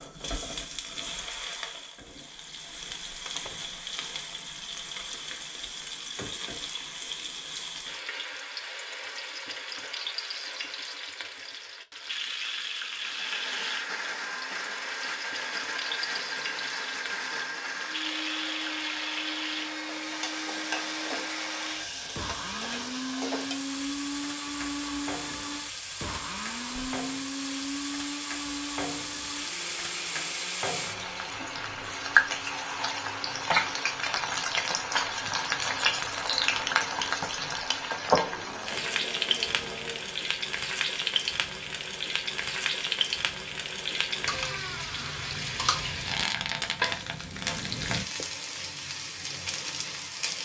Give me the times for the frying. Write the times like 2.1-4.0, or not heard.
0.0-50.4.